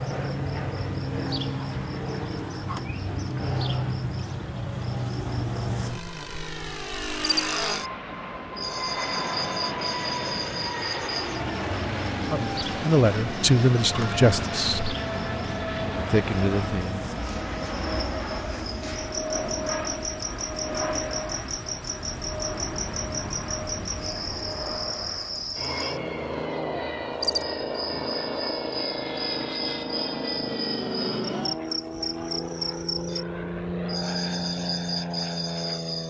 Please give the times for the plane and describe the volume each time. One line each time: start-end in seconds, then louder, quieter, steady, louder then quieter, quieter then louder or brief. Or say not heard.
0.0-36.0 steady.